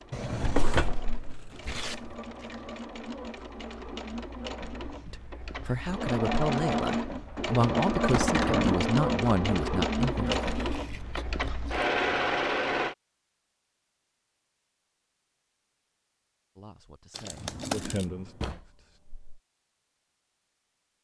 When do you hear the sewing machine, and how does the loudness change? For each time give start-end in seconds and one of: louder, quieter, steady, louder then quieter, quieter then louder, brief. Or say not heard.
0.0-12.9 louder.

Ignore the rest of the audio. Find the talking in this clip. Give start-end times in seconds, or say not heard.
5.0-10.4, 16.6-19.0.